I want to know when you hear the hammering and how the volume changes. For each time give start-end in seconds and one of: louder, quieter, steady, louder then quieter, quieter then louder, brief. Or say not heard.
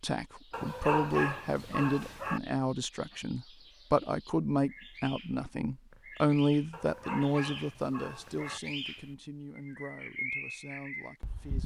not heard.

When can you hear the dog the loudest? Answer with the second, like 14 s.
1 s.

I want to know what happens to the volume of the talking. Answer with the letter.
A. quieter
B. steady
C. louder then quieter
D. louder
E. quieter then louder
A.